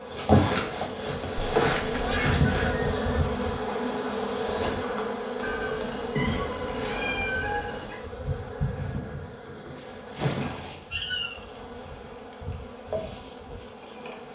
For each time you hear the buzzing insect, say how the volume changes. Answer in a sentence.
You can hear the buzzing insect from 0.0 to 14.3 s, getting quieter.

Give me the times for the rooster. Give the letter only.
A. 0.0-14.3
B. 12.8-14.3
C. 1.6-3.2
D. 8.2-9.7
C.